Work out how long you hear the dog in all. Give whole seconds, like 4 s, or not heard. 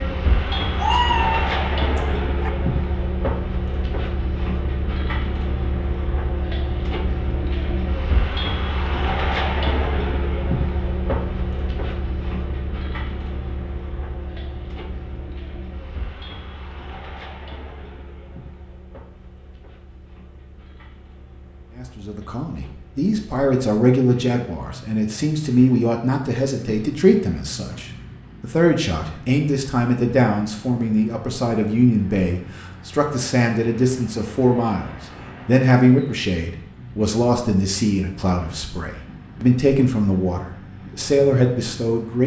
2 s.